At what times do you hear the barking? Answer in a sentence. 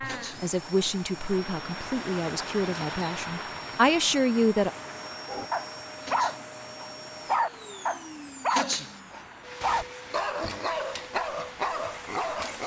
The barking can be heard from 5.2 to 12.6 s.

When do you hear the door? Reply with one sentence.
The door can't be heard in this clip.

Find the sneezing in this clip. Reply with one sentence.
The sneezing can be heard from 0.0 to 0.5 s, from 6.0 to 6.5 s and from 8.5 to 8.9 s.